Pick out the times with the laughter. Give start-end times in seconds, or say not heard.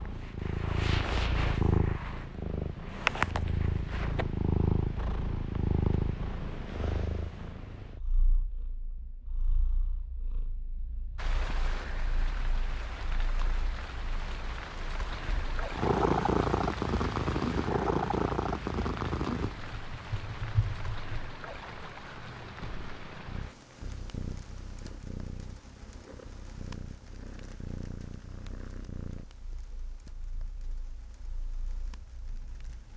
not heard.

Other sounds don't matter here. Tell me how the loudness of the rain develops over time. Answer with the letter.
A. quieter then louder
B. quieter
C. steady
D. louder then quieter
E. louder
B.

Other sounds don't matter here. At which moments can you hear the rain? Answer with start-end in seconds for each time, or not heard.
11.2-32.9.